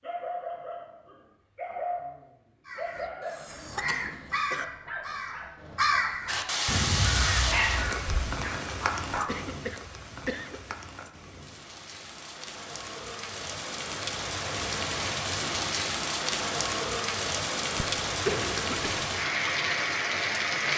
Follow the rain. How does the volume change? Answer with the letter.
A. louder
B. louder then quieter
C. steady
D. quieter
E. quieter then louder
E.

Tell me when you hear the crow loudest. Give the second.
6 s.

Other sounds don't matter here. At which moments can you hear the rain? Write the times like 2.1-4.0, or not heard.
6.2-20.7.